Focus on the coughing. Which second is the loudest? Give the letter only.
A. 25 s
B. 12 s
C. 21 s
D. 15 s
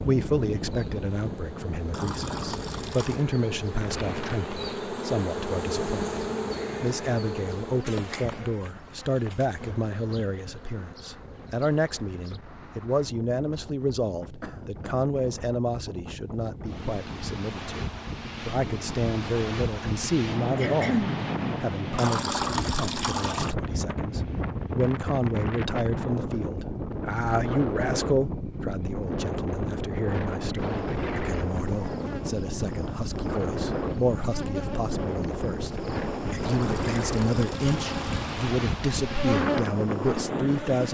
C.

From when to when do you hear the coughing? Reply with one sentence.
You can hear the coughing from 14.4 to 14.9 s and from 20.6 to 21.1 s.